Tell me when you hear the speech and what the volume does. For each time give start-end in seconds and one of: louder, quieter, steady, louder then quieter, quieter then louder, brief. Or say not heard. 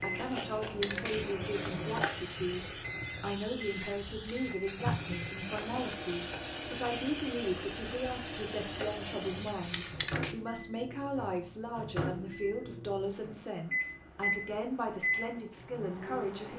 0.0-16.5 steady.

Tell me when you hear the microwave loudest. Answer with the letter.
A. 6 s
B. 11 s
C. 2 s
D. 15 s
D.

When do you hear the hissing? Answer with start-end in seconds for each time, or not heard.
0.0-10.3.